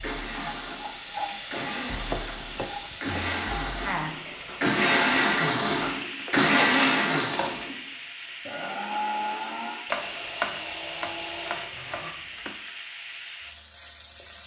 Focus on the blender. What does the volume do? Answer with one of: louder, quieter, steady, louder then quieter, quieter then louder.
louder then quieter.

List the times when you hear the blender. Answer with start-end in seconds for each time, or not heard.
0.0-12.2.